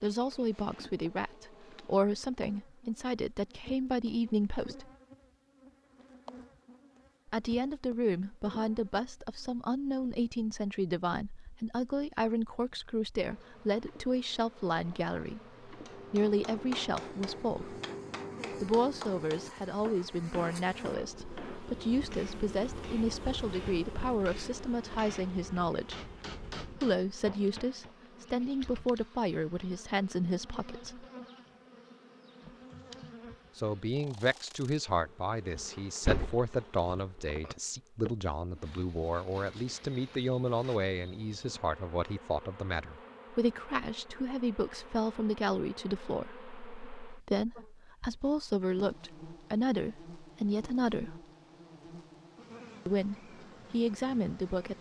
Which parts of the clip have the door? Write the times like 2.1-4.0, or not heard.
35.5-37.5.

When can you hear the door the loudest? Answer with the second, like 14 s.
36 s.